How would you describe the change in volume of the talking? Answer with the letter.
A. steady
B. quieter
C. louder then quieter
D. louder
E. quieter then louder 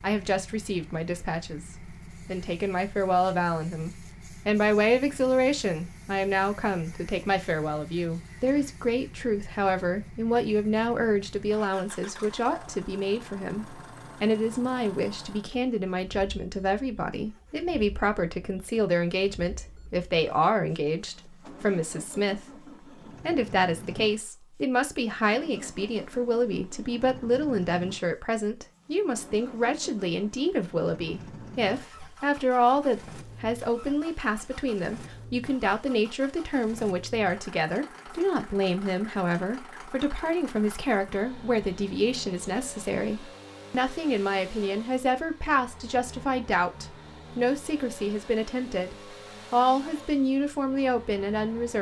A.